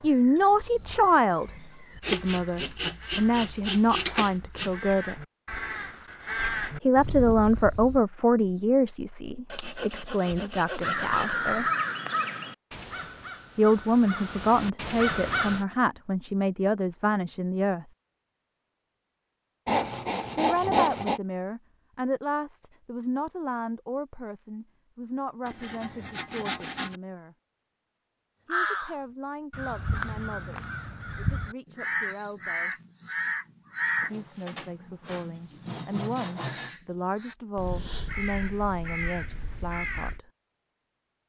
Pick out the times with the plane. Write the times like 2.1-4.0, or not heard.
not heard.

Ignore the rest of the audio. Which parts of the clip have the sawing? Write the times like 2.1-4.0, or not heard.
2.0-4.7, 9.5-11.4, 19.6-21.2, 25.4-27.0, 34.0-36.8.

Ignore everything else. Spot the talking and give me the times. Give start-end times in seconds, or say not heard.
0.0-5.2, 6.8-11.7, 13.6-17.9, 20.4-27.4, 28.4-32.8, 34.0-40.2.